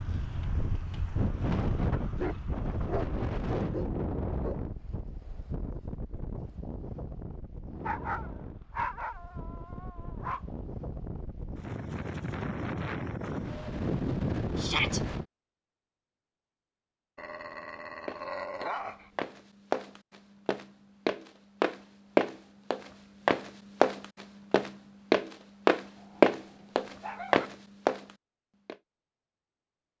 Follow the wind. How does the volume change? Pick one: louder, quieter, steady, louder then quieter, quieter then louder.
quieter then louder.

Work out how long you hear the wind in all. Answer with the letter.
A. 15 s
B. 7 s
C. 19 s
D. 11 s
A.